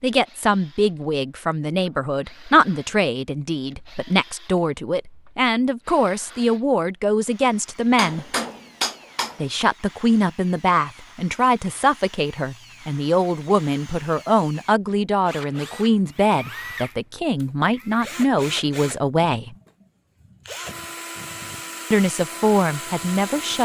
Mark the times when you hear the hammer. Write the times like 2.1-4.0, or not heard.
8.0-9.4.